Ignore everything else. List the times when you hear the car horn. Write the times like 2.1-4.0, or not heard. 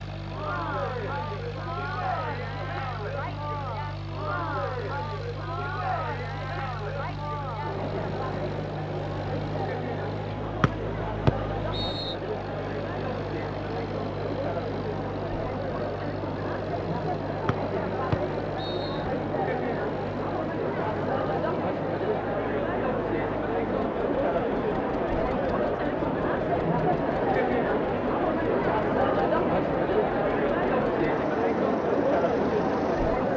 not heard.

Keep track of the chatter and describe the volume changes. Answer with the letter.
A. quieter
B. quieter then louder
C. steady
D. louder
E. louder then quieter
D.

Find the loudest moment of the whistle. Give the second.
11 s.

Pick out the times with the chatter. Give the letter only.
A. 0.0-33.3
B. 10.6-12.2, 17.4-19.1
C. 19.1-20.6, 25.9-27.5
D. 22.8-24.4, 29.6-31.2
A.